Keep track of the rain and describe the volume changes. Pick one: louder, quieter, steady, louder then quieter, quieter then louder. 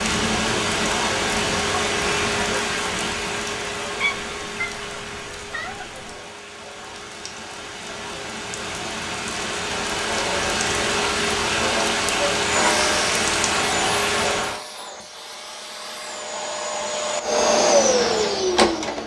quieter then louder.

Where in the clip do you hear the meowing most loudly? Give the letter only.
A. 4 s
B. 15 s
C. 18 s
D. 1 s
A.